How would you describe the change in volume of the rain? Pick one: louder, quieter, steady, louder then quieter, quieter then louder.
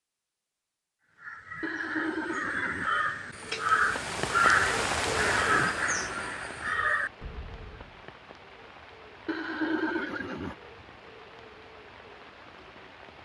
quieter.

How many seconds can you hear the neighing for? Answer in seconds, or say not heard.
3 s.